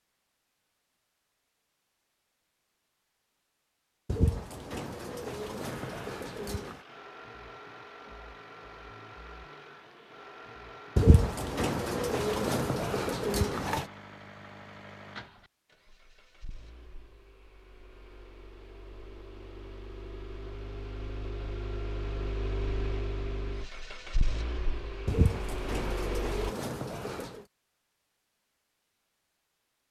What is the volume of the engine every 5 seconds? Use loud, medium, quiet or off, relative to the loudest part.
off, medium, medium, quiet, loud, loud.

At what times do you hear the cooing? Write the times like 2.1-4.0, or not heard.
4.0-6.8, 10.9-13.8, 25.1-27.4.